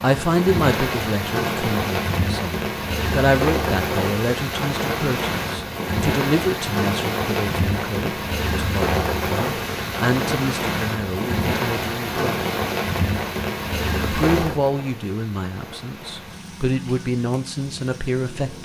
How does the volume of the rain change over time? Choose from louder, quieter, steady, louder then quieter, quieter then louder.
quieter.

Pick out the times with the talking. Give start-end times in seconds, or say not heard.
0.0-12.4, 14.1-18.6.